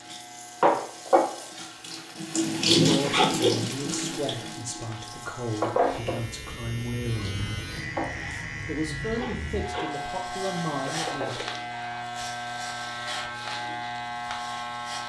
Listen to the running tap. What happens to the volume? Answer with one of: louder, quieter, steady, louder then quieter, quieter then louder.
quieter.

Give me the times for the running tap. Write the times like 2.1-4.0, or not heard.
0.1-11.4.